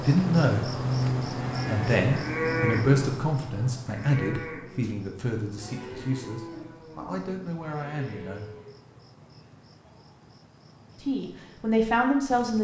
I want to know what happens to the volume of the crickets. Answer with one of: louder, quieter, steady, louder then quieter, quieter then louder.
quieter.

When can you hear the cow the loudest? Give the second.
3 s.